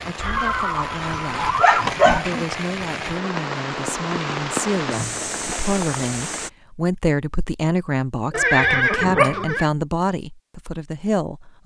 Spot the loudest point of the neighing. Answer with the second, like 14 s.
9 s.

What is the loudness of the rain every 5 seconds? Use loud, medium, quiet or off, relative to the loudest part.
loud, loud, off.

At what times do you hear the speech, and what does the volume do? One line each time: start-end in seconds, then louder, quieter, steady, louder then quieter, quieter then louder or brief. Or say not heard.
0.1-11.6 louder.